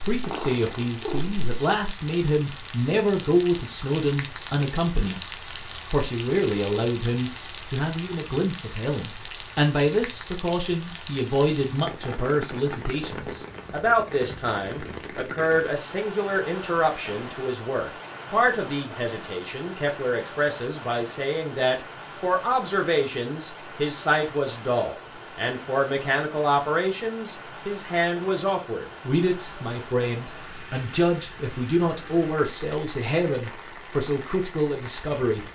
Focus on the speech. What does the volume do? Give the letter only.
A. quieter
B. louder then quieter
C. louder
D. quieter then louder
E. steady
E.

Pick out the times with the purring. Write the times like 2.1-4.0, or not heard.
0.1-1.4.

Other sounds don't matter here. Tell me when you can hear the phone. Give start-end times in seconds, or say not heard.
not heard.